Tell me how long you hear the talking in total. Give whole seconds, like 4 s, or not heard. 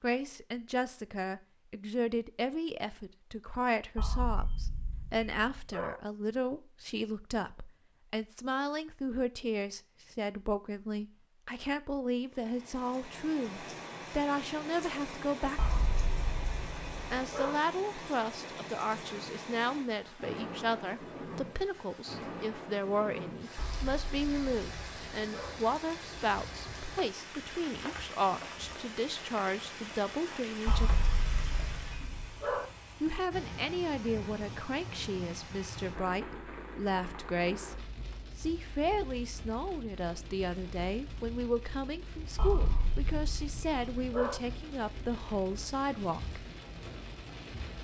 43 s.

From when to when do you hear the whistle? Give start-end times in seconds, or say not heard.
not heard.